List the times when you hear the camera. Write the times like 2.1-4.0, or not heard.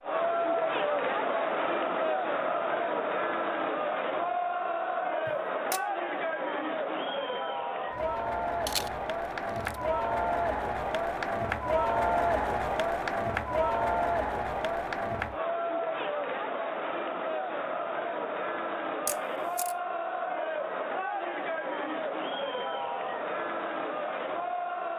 5.2-5.8, 8.7-9.8, 19.1-19.8.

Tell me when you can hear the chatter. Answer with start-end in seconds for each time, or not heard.
0.0-24.9.